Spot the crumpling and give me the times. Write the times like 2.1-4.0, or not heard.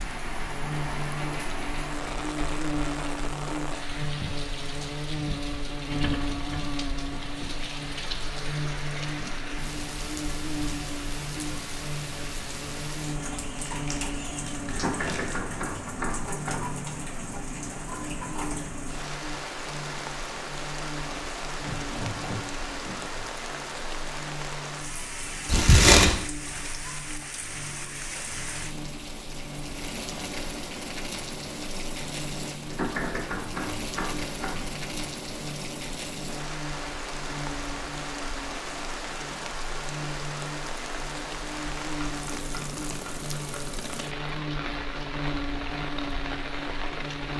13.6-15.3, 25.4-26.1.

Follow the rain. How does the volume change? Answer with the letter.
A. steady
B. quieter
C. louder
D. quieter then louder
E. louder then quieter
A.